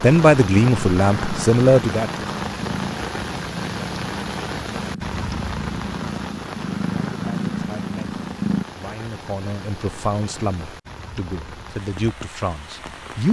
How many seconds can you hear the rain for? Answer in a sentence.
You can hear the rain for 13 seconds altogether.